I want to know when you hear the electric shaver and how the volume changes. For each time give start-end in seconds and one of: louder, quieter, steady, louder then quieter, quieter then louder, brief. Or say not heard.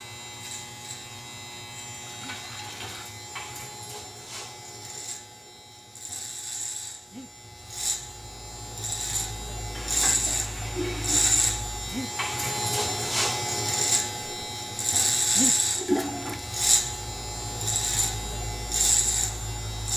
0.0-19.9 louder.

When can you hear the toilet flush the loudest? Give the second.
16 s.